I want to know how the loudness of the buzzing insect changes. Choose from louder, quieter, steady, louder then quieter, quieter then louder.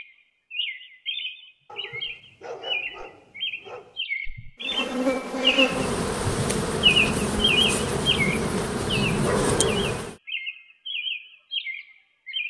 steady.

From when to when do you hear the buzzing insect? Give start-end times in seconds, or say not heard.
4.6-10.2.